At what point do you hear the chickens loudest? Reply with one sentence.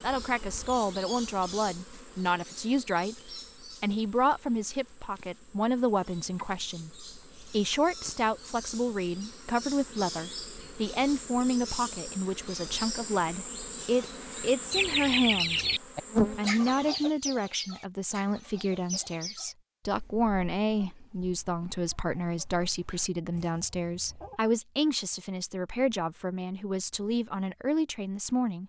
The volume of the chickens peaks at 15 seconds.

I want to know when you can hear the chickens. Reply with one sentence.
You can hear the chickens from 14.7 to 24.4 s.